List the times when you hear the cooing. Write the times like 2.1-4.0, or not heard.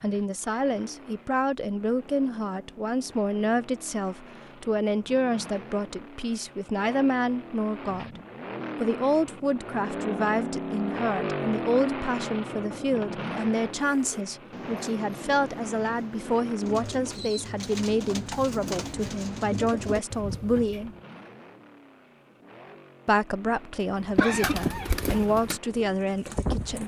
13.9-21.0, 24.1-26.8.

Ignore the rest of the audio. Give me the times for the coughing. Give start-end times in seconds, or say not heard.
24.1-25.2.